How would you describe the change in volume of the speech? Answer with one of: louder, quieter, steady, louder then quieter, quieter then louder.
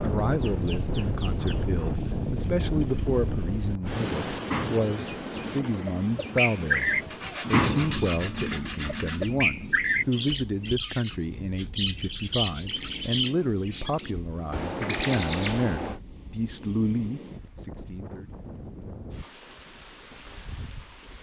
steady.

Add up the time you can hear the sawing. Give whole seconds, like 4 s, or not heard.
2 s.